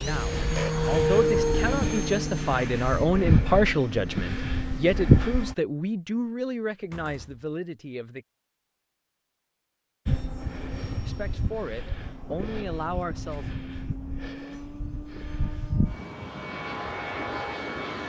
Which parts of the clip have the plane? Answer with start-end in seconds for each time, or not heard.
0.0-5.5, 10.1-18.0.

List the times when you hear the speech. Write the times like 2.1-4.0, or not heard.
0.0-8.2, 11.0-13.4.